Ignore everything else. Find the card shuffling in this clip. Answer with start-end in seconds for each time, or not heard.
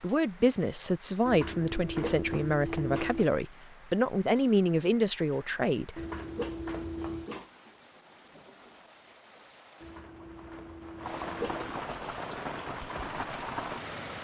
1.2-3.2, 6.0-7.3, 9.8-11.7.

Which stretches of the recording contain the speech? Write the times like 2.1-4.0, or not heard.
0.0-6.0.